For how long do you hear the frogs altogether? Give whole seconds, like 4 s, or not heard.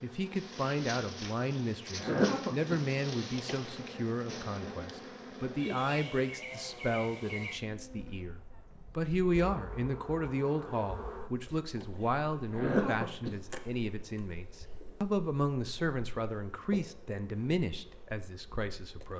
not heard.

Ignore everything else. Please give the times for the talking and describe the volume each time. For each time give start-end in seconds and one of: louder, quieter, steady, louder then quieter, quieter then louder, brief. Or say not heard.
0.0-19.1 steady.